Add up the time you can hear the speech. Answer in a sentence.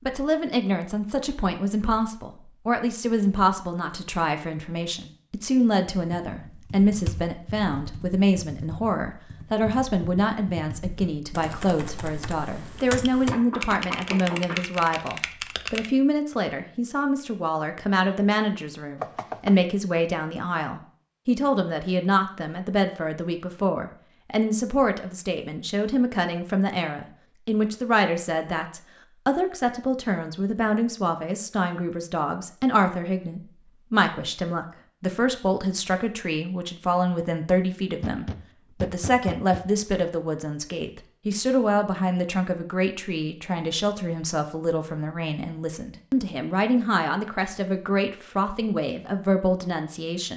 You can hear the speech for 50 seconds altogether.